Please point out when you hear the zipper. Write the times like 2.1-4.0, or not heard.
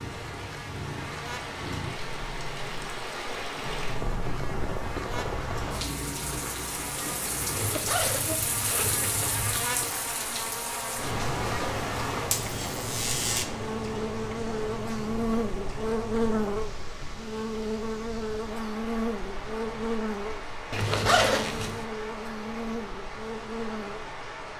7.5-9.6, 20.7-21.9.